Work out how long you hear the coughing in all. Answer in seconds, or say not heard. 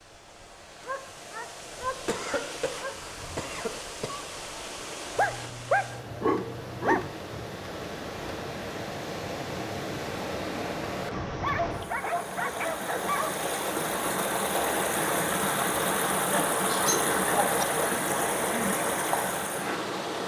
2 s.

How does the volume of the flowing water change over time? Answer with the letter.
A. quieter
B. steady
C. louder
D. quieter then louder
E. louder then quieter
C.